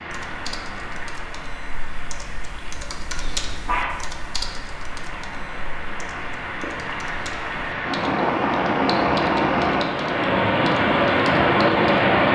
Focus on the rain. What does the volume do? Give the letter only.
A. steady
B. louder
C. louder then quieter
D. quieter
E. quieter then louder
B.